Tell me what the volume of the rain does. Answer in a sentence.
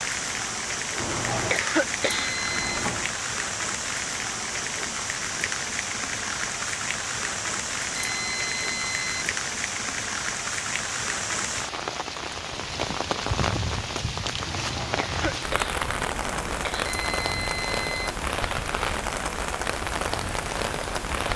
The loudness of the rain stays about the same.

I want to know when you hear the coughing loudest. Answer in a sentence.
The loudest moment of the coughing is at 2 seconds.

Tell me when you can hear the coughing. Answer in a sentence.
The coughing can be heard from 0.9 to 3.1 s and from 14.4 to 16.9 s.